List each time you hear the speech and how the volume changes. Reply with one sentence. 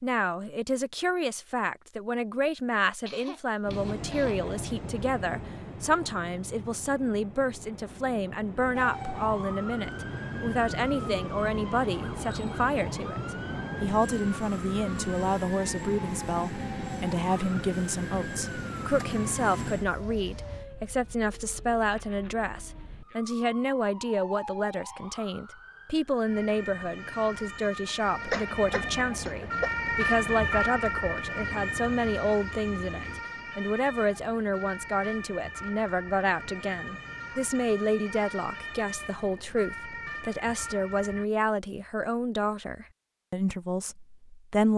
You can hear the speech from 0.0 to 44.7 s, at a steady volume.